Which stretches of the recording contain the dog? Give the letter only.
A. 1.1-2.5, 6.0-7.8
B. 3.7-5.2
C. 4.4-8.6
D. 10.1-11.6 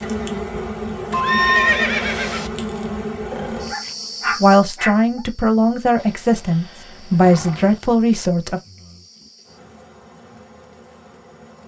B.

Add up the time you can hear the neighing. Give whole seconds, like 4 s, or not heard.
3 s.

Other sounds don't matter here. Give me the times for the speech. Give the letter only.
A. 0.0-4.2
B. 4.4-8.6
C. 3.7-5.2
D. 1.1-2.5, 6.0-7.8
B.